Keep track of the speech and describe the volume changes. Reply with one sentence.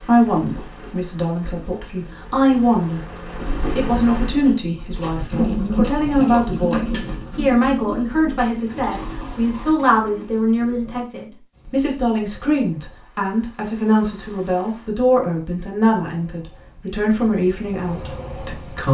The loudness of the speech stays about the same.